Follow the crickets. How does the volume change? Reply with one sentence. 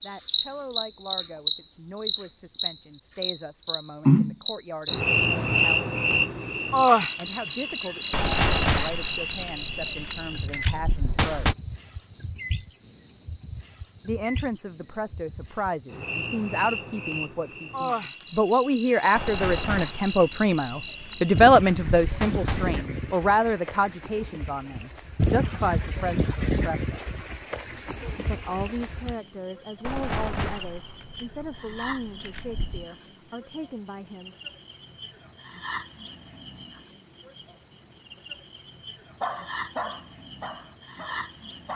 The loudness of the crickets goes down, then up.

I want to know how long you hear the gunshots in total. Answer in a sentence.
The gunshots can be heard for 10 seconds in total.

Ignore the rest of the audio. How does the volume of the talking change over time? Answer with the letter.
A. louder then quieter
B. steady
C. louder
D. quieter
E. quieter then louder
A.